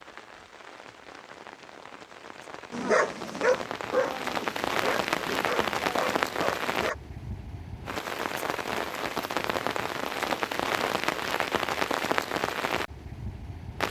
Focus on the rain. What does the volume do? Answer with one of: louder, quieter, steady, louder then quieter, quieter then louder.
louder.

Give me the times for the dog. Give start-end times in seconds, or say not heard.
2.7-7.0.